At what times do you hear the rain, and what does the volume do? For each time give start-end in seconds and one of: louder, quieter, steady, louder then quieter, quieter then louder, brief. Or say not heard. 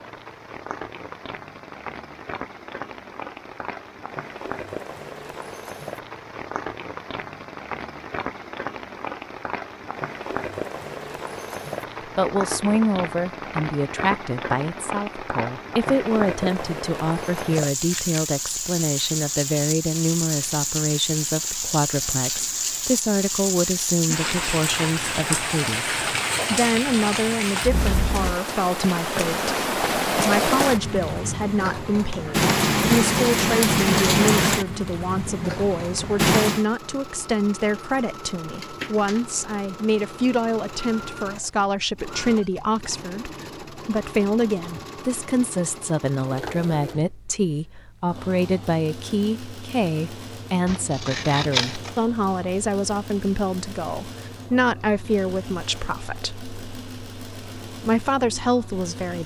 0.0-36.6 louder.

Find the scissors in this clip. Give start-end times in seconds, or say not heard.
17.8-18.2, 50.6-51.9.